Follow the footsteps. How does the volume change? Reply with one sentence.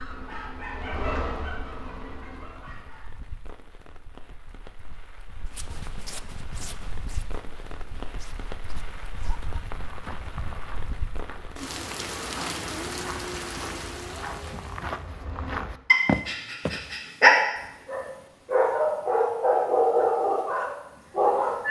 The loudness of the footsteps goes up.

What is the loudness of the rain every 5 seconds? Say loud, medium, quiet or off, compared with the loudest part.
quiet, medium, loud, off, off.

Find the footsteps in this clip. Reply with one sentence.
The footsteps can be heard from 5.5 to 16.9 s.